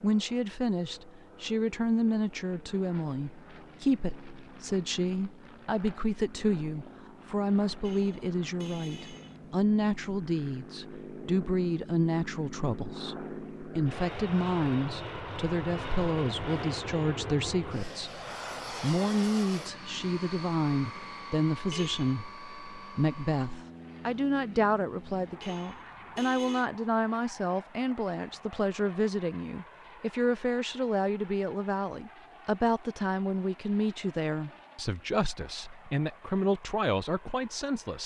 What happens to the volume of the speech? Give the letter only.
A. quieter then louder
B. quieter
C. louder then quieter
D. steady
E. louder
D.